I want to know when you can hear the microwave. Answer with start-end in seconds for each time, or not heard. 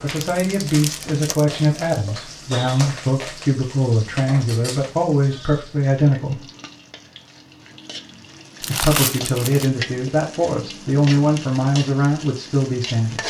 not heard.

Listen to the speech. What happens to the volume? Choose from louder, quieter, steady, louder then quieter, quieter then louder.
steady.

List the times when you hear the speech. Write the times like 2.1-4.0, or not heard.
0.0-6.5, 8.6-13.2.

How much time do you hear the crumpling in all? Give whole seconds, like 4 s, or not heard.
3 s.